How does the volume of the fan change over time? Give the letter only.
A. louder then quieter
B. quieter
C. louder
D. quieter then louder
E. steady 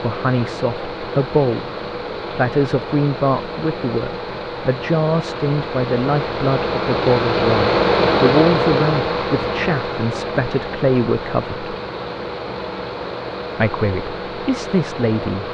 A.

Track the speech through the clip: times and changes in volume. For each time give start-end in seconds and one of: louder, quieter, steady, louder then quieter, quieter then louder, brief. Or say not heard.
0.0-1.7 brief
2.3-11.7 steady
13.6-15.4 brief.